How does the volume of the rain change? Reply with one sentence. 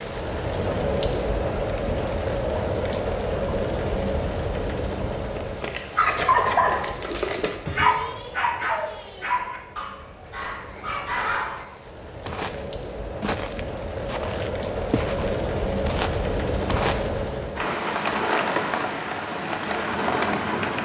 The volume of the rain goes down, then up.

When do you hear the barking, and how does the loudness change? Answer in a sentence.
The barking can be heard from 5.3 to 11.7 s, getting quieter.